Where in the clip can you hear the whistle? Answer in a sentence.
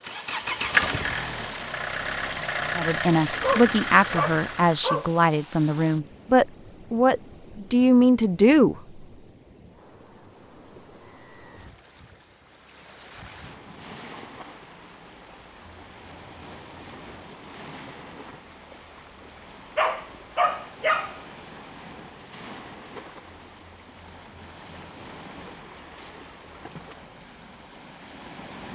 You can't hear the whistle here.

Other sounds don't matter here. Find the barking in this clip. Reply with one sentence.
You can hear the barking from 3.4 to 5.1 s and from 19.8 to 21.2 s.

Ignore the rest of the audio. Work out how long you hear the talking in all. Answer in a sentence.
You can hear the talking for 6 seconds altogether.